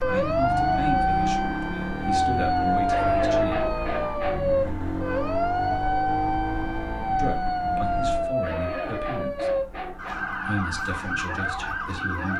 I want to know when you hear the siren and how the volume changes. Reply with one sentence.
The siren can be heard from 0.0 to 12.3 s, getting quieter.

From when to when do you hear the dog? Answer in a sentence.
You can hear the dog from 2.8 to 4.5 s and from 8.2 to 10.2 s.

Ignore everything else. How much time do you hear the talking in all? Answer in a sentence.
The talking can be heard for 8 seconds in total.